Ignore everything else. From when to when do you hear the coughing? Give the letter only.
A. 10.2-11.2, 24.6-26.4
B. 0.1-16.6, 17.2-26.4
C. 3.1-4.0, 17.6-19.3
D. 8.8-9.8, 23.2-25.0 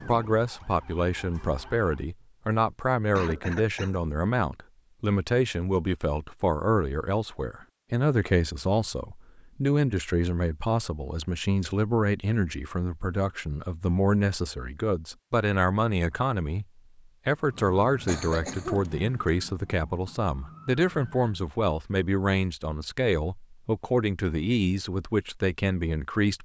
C.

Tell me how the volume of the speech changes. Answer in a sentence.
The volume of the speech stays about the same.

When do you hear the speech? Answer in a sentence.
The speech can be heard from 0.1 to 16.6 s and from 17.2 to 26.4 s.